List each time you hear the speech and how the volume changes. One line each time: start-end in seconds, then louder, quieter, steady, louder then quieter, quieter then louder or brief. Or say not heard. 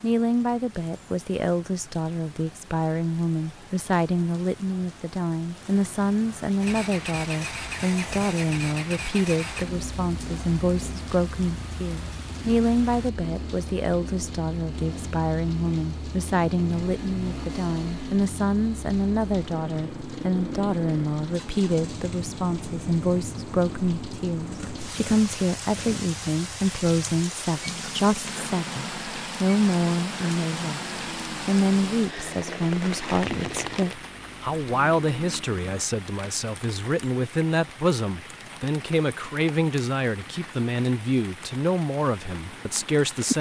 0.0-43.3 steady.